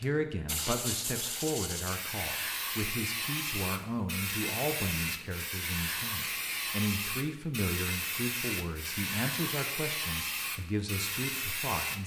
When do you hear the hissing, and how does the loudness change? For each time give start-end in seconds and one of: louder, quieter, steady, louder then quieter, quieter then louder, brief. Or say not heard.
0.0-12.0 steady.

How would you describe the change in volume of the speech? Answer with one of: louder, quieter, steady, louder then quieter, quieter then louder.
steady.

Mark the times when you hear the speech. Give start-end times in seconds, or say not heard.
0.0-12.0.